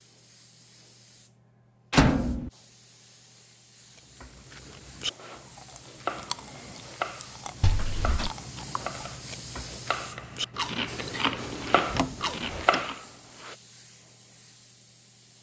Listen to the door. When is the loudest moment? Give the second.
2 s.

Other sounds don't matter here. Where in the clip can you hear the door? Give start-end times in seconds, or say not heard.
1.9-2.5, 7.6-8.3, 11.9-12.8.